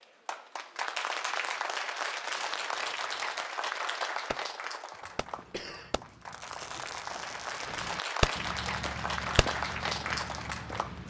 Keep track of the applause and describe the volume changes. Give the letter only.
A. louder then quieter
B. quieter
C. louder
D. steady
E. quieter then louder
E.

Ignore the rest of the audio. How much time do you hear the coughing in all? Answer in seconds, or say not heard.
2 s.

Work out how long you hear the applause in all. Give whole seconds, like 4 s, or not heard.
11 s.